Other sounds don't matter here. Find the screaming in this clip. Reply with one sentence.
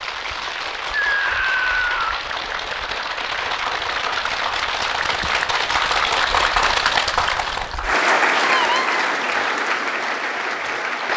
The screaming can be heard from 0.9 to 2.2 s and from 8.5 to 9.0 s.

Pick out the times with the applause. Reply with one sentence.
The applause can be heard from 0.0 to 11.1 s.